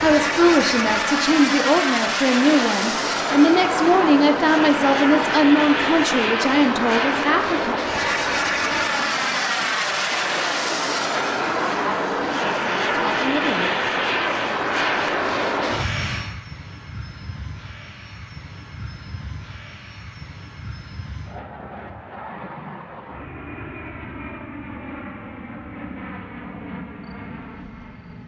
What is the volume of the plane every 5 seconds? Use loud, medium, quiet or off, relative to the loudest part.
loud, loud, loud, medium, quiet, quiet.